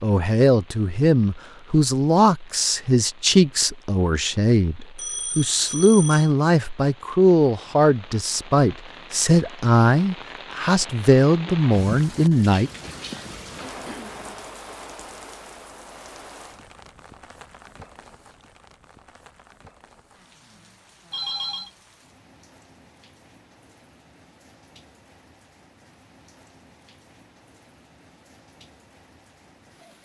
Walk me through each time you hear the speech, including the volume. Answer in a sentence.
The speech can be heard from 0.0 to 12.7 s, at a steady volume.